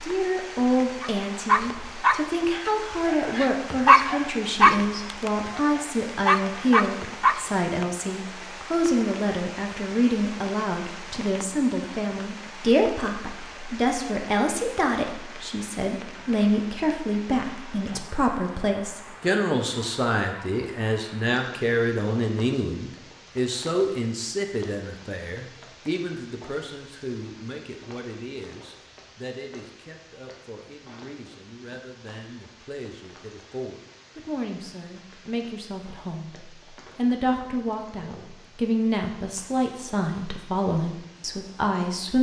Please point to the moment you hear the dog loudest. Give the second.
4 s.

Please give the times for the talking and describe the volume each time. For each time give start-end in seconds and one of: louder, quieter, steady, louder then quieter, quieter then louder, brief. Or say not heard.
0.0-42.1 quieter then louder.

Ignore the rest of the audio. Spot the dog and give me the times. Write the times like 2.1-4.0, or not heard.
1.0-7.5.